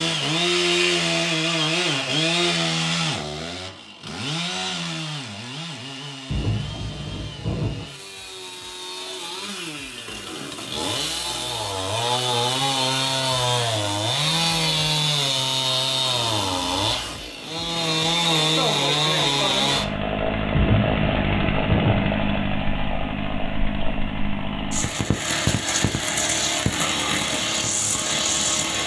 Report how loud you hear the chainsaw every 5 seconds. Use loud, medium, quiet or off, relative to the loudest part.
loud, quiet, loud, loud, loud, loud.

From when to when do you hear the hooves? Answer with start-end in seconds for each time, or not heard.
not heard.